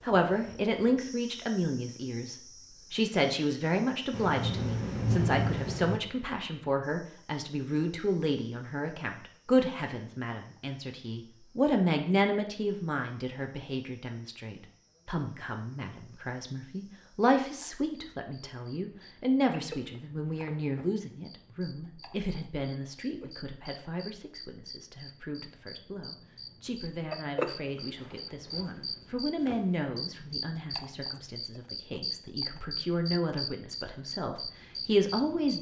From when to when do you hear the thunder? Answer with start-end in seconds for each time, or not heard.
4.1-6.0.